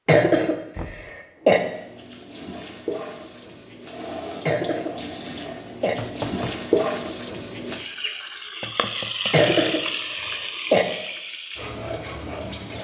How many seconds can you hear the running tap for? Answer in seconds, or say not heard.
11 s.